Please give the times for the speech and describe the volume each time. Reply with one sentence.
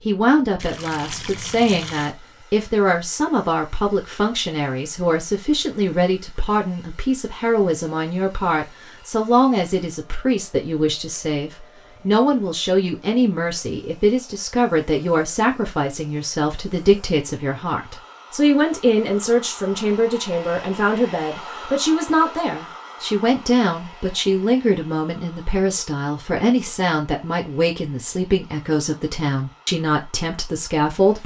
The speech can be heard from 0.1 to 31.2 s, at a steady volume.